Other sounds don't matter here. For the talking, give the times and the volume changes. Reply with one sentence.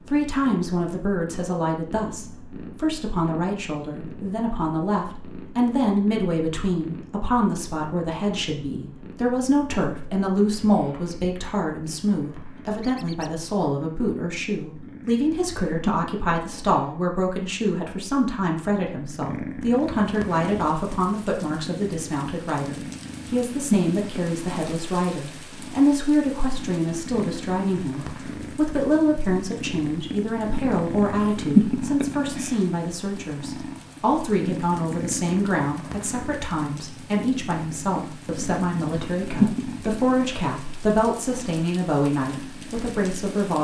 You can hear the talking from 0.1 to 43.5 s, at a steady volume.